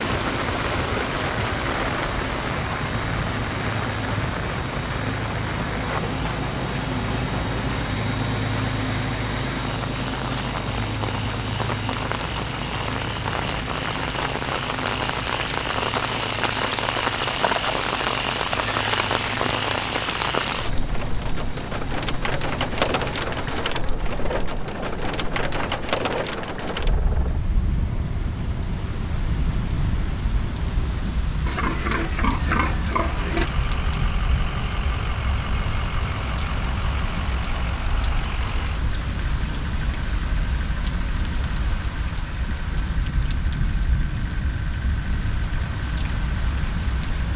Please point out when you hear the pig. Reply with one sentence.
You can hear the pig from 31.4 to 33.5 s.